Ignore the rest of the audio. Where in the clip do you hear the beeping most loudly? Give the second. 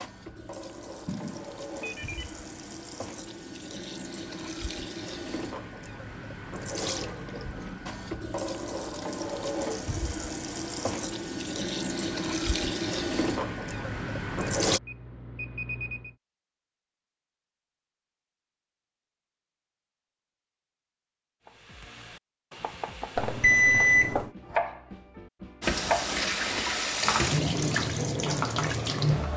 24 s.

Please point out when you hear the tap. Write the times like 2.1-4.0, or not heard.
0.0-14.8, 25.6-29.3.